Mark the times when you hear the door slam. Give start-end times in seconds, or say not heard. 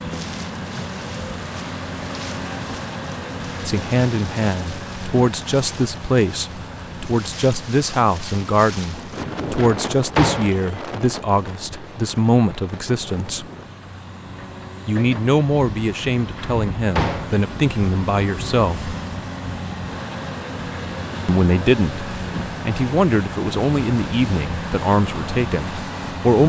8.9-10.7, 15.8-17.4.